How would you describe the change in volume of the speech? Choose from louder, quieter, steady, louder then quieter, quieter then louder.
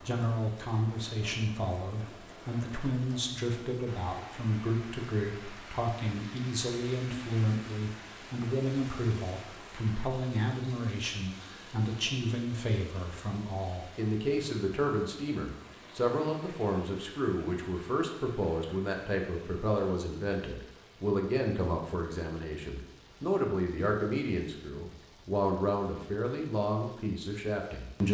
steady.